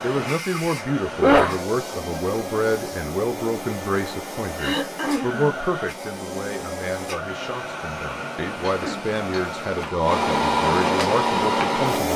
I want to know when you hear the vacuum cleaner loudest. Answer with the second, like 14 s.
11 s.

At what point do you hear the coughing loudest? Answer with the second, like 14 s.
1 s.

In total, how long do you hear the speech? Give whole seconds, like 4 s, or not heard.
12 s.